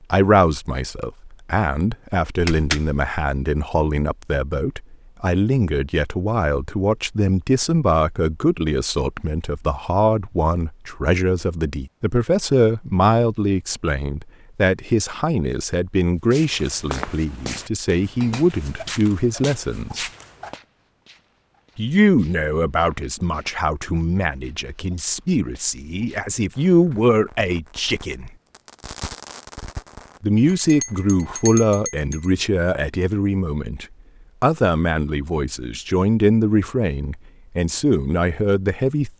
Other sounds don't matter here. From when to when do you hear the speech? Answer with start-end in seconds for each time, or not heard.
0.1-20.1, 21.8-28.3, 30.2-39.1.